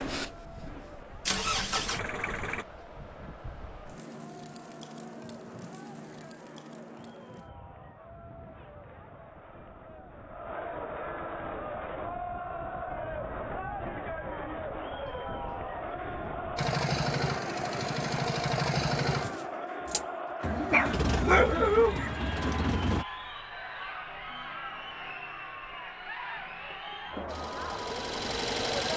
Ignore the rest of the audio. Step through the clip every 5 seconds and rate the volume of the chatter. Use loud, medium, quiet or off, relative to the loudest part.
quiet, quiet, loud, loud, loud, loud.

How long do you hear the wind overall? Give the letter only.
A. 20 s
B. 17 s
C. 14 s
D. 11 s
B.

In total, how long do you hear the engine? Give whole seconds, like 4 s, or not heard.
11 s.